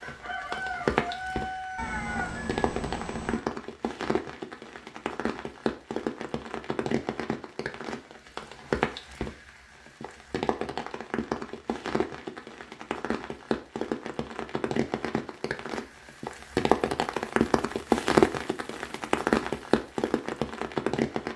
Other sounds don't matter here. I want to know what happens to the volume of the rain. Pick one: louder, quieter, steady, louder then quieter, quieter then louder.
louder.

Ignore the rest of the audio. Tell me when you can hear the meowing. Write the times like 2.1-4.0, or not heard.
1.8-3.4.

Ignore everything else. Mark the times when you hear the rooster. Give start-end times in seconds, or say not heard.
0.0-2.6.